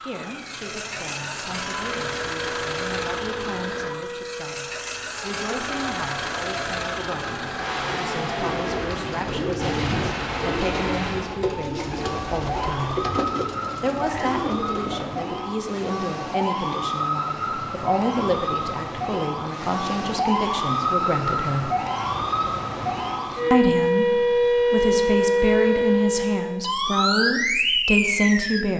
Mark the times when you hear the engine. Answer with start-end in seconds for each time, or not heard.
0.0-11.3.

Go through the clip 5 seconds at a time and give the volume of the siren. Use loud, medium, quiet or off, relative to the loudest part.
quiet, quiet, medium, medium, loud, loud.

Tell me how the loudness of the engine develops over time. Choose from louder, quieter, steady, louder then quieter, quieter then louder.
steady.